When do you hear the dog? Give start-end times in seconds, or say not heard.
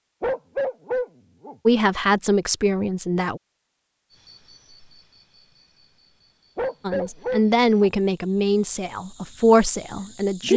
0.2-1.6, 6.5-7.9.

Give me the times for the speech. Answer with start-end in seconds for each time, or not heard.
1.6-3.4, 6.8-10.5.